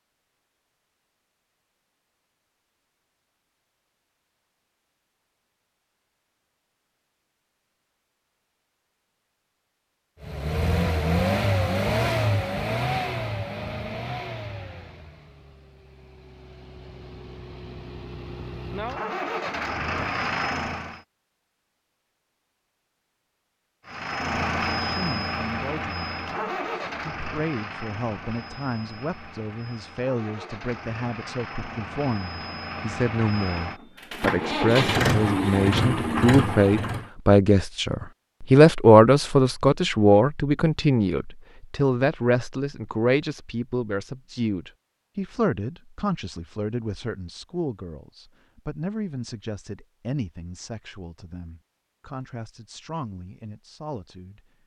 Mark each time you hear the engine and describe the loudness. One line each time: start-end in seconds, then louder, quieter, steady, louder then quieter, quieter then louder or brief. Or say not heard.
10.2-21.0 quieter then louder
23.9-37.1 quieter then louder.